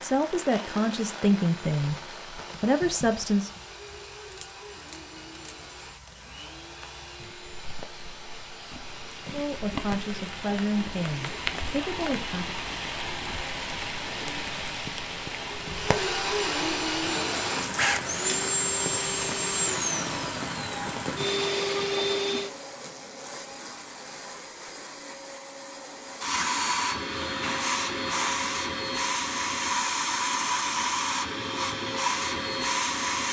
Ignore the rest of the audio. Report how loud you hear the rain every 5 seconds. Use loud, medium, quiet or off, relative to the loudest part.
medium, medium, loud, loud, loud, off, off.